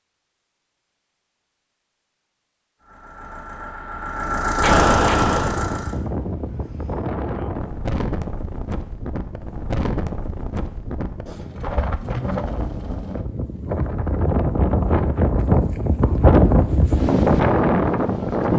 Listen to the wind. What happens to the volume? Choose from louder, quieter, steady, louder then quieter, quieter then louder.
louder.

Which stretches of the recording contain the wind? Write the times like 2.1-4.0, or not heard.
4.5-18.5.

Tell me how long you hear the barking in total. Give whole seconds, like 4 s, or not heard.
not heard.